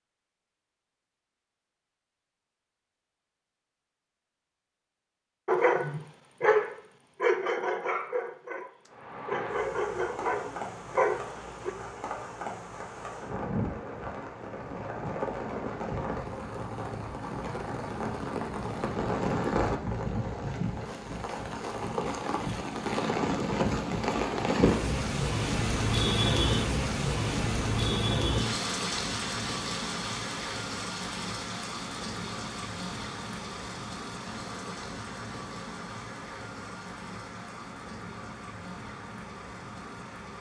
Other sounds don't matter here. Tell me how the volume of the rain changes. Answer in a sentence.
The volume of the rain goes up, then down.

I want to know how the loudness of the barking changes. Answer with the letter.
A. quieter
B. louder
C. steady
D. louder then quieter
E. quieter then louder
E.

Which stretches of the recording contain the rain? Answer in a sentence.
The rain can be heard from 8.8 to 40.3 s.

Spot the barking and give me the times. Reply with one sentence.
The barking can be heard from 5.5 to 11.7 s.